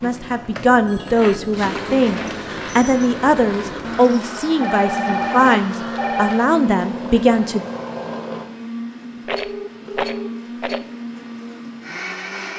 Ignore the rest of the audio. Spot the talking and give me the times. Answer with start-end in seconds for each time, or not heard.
0.0-7.7.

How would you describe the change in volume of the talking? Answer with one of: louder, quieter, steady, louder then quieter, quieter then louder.
steady.